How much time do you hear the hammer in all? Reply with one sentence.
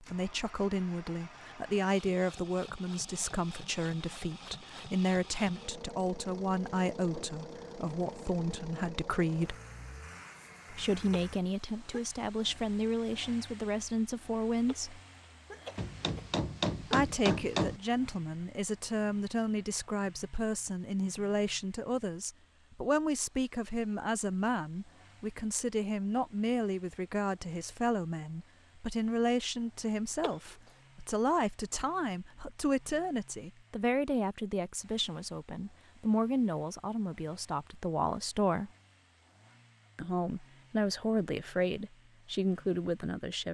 You can hear the hammer for 2 seconds altogether.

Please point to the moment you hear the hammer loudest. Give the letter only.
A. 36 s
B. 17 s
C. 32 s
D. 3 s
B.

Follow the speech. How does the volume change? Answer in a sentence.
The volume of the speech stays about the same.